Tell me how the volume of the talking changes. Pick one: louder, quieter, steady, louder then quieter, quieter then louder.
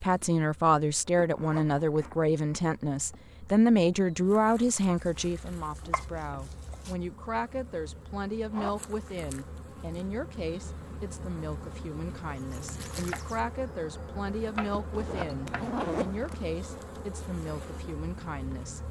quieter.